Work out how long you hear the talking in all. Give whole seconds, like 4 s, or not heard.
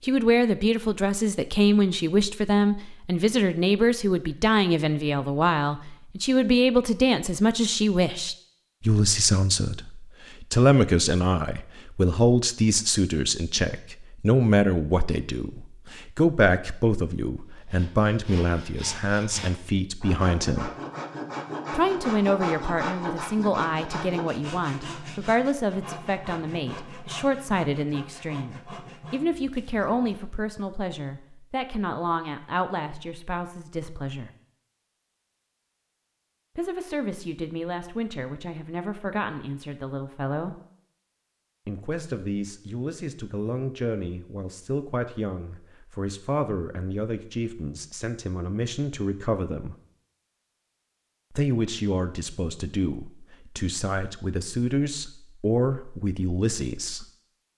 51 s.